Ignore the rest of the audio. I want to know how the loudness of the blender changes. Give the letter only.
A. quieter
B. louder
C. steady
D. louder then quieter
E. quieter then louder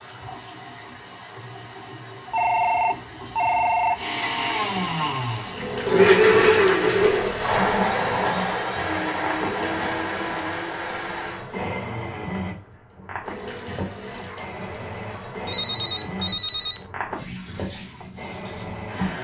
A.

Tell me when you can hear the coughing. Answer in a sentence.
You can't hear the coughing here.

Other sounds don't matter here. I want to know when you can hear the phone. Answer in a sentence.
The phone can be heard from 2.3 to 4.0 s, from 8.5 to 8.9 s and from 15.4 to 16.9 s.